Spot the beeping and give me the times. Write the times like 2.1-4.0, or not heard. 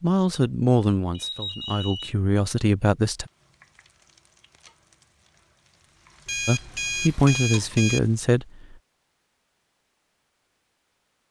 1.1-2.1, 6.2-8.0.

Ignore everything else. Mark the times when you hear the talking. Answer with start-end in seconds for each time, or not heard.
0.0-3.2, 6.5-8.8.